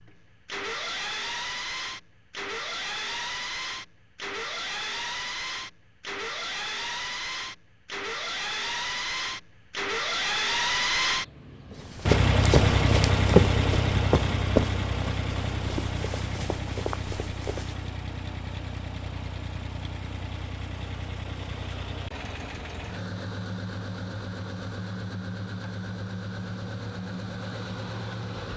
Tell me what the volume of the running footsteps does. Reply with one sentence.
The loudness of the running footsteps goes up, then down.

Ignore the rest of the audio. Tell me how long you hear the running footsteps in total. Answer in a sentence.
The running footsteps can be heard for 6 seconds in total.